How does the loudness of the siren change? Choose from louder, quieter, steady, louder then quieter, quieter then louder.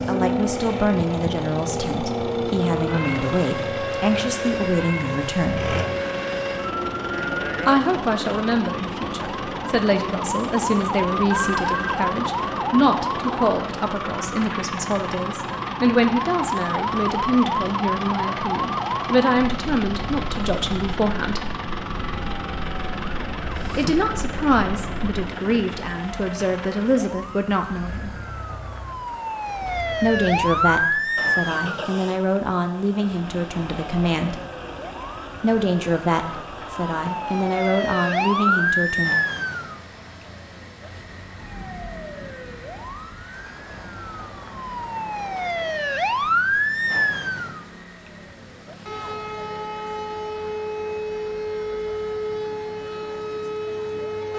steady.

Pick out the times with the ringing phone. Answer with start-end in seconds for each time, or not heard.
11.2-12.0.